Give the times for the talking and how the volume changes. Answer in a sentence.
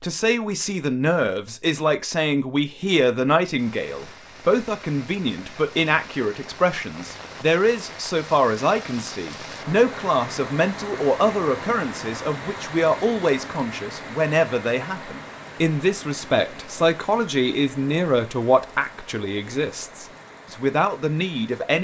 The talking can be heard from 0.0 to 21.7 s, at a steady volume.